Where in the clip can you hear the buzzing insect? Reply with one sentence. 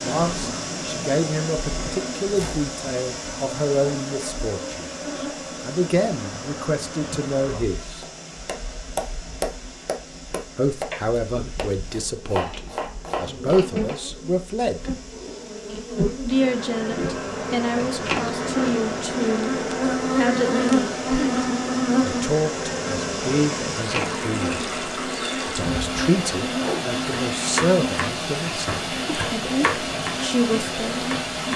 The buzzing insect can be heard from 0.0 to 31.5 s.